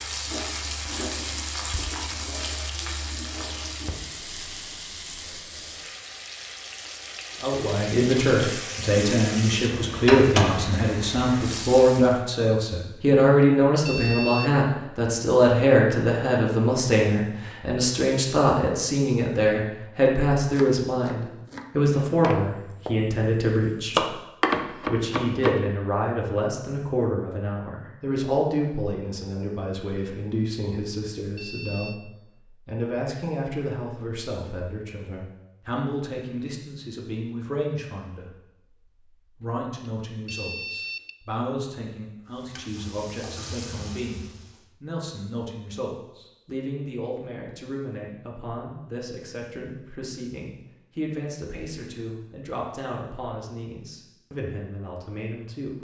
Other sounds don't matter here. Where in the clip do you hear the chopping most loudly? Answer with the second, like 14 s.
24 s.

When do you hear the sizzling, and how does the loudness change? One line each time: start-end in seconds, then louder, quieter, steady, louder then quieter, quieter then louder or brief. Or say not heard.
0.0-12.2 quieter then louder
42.2-44.7 brief.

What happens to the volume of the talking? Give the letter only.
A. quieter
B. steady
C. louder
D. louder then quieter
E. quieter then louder
A.